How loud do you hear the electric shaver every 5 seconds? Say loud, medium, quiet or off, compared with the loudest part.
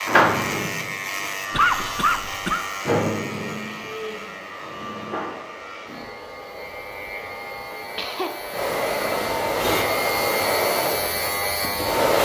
loud, medium, loud.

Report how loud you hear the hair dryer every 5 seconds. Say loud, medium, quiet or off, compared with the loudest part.
quiet, medium, loud.